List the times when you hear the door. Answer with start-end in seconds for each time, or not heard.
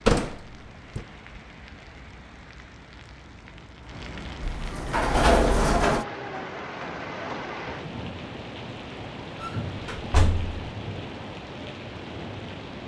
0.1-1.1, 4.4-6.0, 9.4-10.7.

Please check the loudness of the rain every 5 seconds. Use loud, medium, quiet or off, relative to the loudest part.
medium, loud, loud.